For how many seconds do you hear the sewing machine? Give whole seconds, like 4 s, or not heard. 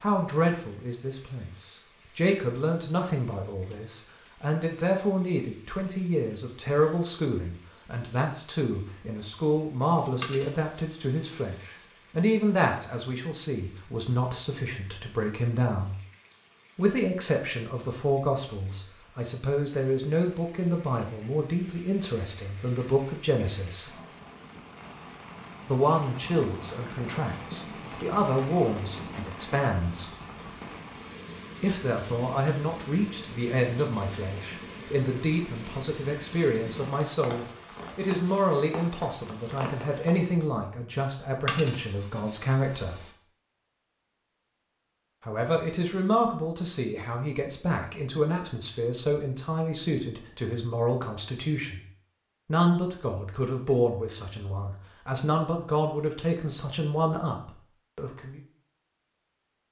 not heard.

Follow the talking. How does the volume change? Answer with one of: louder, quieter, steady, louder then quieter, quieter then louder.
steady.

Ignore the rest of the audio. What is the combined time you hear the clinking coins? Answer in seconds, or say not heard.
3 s.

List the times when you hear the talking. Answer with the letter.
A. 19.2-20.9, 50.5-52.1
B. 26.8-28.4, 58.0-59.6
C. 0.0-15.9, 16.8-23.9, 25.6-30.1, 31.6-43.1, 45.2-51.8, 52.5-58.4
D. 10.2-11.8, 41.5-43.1
C.